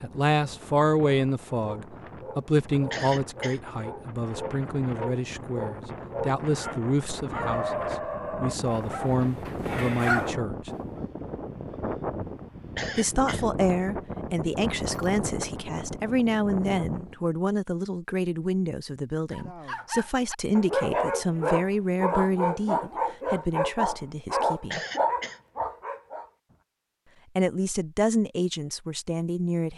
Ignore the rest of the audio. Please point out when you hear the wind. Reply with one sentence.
You can hear the wind from 0.0 to 17.3 s.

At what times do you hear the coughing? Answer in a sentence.
You can hear the coughing from 2.9 to 3.6 s, from 12.8 to 13.4 s and from 24.7 to 25.4 s.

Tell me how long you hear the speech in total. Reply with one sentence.
The speech can be heard for 25 seconds in total.